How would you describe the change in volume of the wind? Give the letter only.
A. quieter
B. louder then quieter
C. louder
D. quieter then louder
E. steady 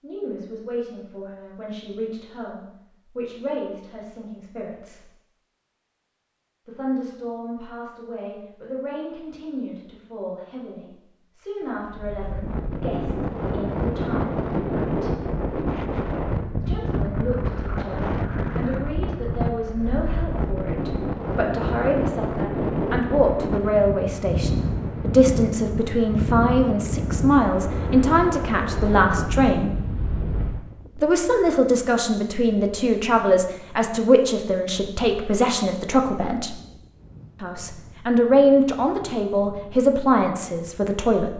A.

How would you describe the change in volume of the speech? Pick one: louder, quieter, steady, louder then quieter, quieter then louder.
louder.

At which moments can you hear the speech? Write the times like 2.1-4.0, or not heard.
0.0-5.1, 6.7-15.2, 16.6-29.8, 31.0-36.6, 37.4-41.3.